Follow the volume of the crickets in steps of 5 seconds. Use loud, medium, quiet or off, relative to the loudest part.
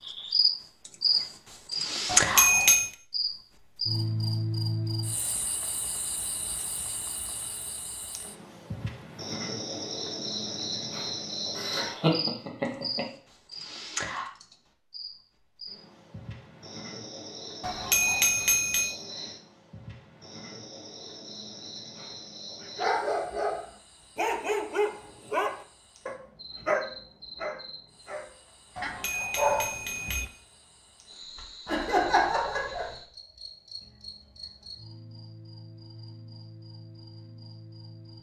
loud, quiet, medium, quiet, quiet, quiet, quiet, quiet.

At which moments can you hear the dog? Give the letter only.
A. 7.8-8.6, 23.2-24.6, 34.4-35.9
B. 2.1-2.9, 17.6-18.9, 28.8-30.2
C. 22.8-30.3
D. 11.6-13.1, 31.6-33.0
C.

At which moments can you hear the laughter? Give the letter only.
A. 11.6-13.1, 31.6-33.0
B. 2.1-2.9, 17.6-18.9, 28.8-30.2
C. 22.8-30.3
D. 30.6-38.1
A.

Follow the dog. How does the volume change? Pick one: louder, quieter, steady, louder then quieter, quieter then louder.
quieter then louder.